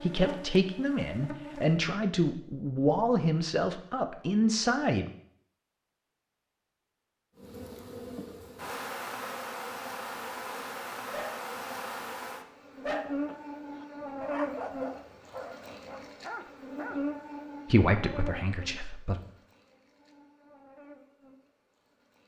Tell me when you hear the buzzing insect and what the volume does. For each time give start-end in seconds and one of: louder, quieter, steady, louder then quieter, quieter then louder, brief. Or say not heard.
0.0-1.9 brief
7.3-22.2 quieter.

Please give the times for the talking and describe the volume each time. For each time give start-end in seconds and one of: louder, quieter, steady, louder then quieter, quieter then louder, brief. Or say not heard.
0.0-5.0 steady
17.6-19.2 brief.